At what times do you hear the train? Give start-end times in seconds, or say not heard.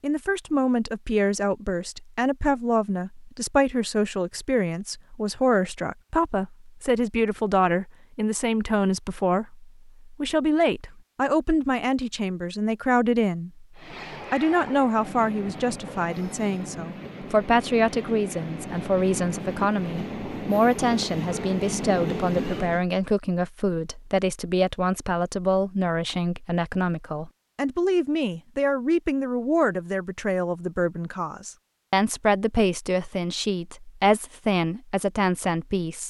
13.8-22.9.